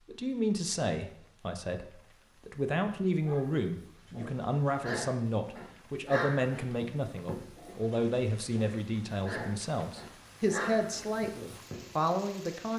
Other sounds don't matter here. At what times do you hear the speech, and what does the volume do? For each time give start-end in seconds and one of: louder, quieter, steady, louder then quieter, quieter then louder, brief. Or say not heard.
0.1-12.7 steady.